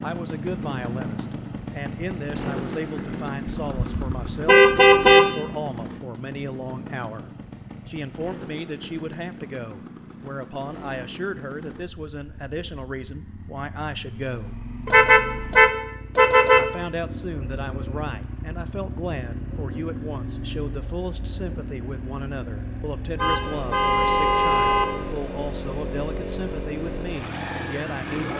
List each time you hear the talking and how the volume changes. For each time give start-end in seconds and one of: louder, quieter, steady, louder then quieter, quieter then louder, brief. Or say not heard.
0.0-14.6 steady
16.6-28.3 steady.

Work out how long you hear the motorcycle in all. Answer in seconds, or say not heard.
28 s.